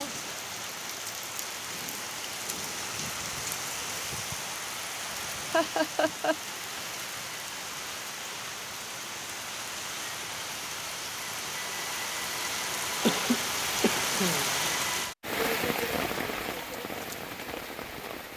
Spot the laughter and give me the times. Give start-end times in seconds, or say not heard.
5.5-6.3, 13.0-14.6.